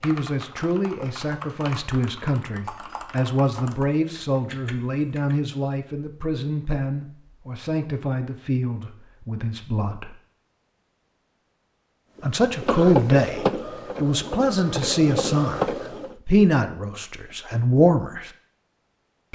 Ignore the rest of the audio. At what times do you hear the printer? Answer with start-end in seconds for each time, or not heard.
12.2-16.1.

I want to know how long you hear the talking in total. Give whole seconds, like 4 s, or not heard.
16 s.